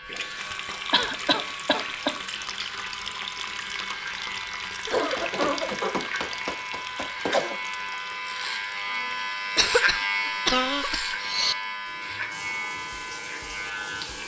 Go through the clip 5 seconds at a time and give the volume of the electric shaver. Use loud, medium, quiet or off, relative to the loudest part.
medium, loud, loud.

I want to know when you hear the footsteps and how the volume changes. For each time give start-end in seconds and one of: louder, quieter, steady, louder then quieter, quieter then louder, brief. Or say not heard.
not heard.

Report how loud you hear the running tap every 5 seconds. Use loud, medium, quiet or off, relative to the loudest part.
loud, loud, medium.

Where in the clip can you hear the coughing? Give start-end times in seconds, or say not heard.
0.9-2.2, 4.8-7.6, 9.6-11.6.